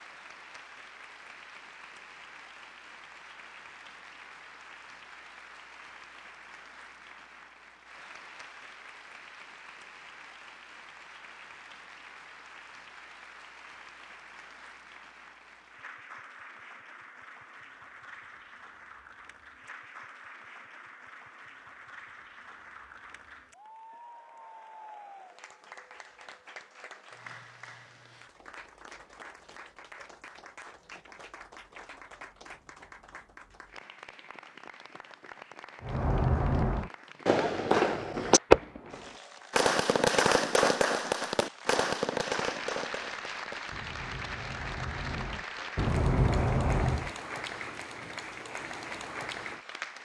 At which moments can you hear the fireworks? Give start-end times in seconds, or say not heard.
35.8-47.1.